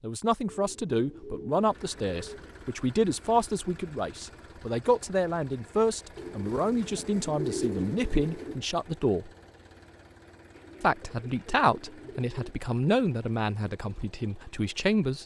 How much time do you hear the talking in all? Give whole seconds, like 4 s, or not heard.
14 s.